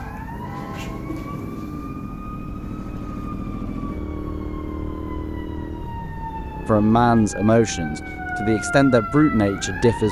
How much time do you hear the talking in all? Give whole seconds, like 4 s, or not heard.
3 s.